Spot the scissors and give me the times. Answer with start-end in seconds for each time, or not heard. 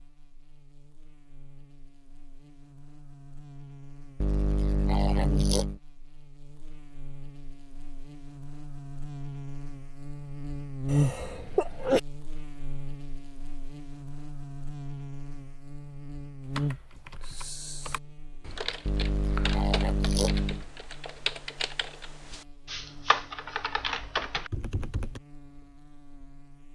not heard.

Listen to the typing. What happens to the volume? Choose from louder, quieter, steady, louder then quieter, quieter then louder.
louder.